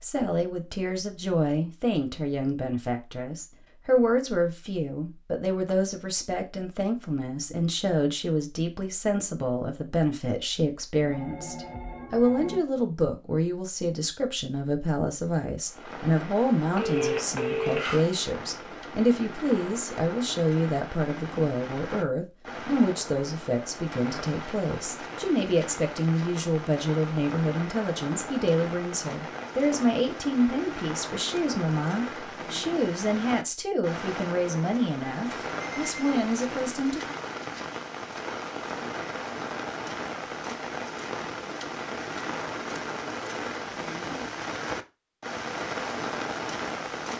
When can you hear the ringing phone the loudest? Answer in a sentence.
The loudest moment of the ringing phone is at 17 seconds.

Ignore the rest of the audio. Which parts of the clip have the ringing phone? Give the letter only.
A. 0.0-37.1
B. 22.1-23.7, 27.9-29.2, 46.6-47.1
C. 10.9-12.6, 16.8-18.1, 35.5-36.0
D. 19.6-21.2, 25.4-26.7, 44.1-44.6
C.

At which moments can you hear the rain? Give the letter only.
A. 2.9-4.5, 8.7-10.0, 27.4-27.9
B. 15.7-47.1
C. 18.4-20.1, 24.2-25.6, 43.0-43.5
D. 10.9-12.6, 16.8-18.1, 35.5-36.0
B.